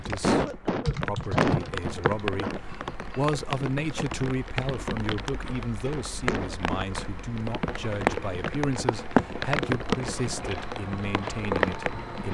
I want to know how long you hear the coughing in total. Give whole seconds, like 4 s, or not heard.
3 s.